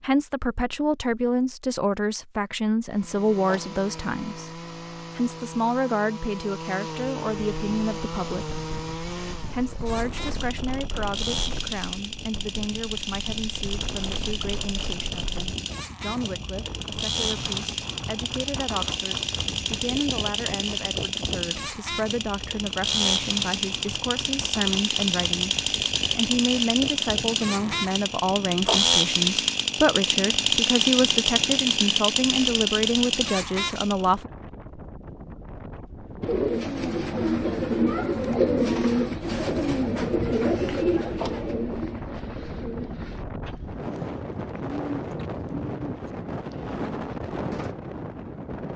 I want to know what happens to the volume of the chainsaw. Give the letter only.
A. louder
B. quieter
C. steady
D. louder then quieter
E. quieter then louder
A.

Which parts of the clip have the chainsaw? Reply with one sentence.
You can hear the chainsaw from 2.9 to 34.0 s.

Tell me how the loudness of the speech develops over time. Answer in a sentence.
The volume of the speech goes down, then up.